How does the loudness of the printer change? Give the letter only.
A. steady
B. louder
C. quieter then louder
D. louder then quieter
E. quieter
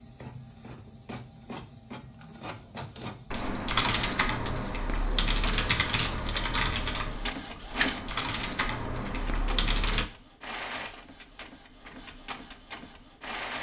D.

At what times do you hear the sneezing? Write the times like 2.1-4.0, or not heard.
not heard.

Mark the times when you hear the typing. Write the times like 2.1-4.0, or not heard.
3.3-10.1.